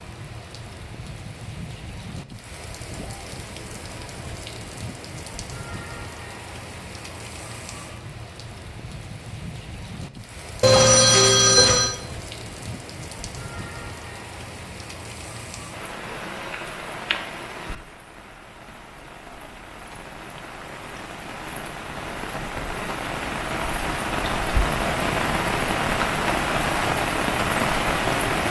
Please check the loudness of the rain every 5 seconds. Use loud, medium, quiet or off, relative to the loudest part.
quiet, quiet, quiet, quiet, medium, loud.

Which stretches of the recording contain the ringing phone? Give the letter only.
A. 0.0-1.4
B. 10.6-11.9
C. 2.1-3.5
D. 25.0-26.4
B.